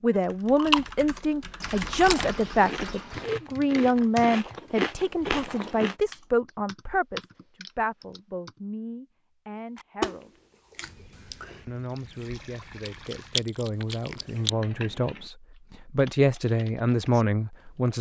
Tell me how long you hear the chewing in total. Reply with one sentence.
You can hear the chewing for 10 seconds altogether.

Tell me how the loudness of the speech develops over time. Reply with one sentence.
The loudness of the speech goes down, then up.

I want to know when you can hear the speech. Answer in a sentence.
The speech can be heard from 0.0 to 10.4 s and from 11.7 to 17.9 s.